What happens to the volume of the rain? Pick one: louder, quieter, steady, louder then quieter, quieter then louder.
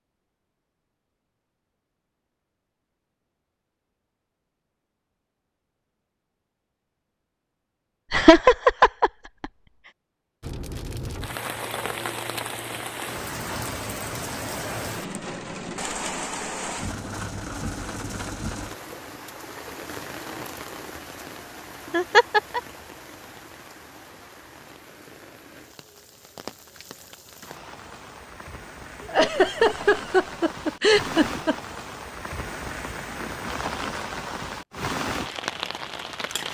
quieter then louder.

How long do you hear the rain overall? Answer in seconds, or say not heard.
26 s.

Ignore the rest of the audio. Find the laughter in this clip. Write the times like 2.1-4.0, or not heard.
8.1-9.4, 21.9-22.6, 29.1-31.6.